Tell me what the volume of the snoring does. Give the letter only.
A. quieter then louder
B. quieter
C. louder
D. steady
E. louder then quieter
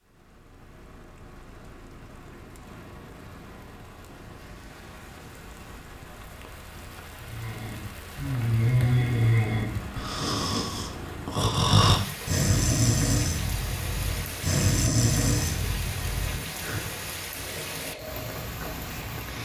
B.